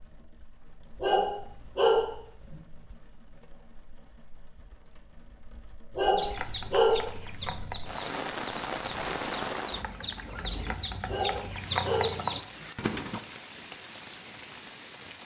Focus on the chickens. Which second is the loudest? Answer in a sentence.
The loudest moment of the chickens is at 12 seconds.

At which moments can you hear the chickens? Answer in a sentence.
The chickens can be heard from 6.2 to 13.2 s.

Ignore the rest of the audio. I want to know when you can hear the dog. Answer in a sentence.
You can hear the dog from 1.0 to 2.6 s, from 6.0 to 7.5 s and from 11.1 to 12.7 s.